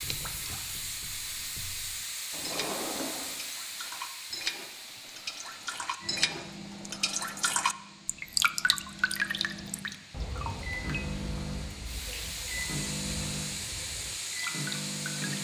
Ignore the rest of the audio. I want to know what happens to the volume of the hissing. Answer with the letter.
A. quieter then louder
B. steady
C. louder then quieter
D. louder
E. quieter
A.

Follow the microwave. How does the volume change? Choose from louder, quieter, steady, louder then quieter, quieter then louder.
louder.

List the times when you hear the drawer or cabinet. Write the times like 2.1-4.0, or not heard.
2.3-3.4.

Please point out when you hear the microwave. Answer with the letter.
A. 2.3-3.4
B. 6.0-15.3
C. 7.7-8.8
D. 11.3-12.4
B.